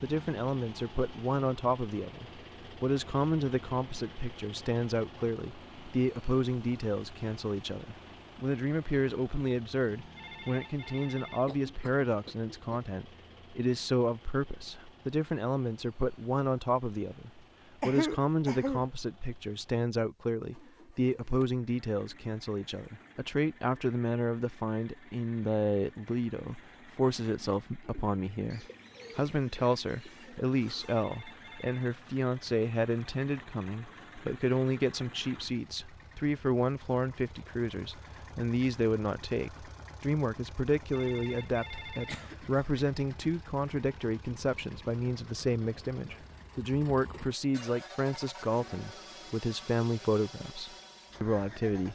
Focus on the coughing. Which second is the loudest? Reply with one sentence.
The volume of the coughing peaks at 18 seconds.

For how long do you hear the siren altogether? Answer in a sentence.
You can't hear the siren here.